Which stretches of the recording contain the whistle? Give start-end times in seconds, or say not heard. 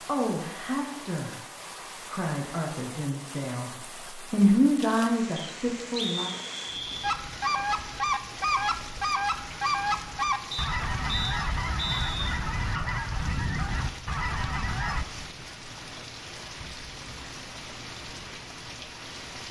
5.3-7.2, 10.5-12.2.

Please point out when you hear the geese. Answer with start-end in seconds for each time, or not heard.
7.0-15.1.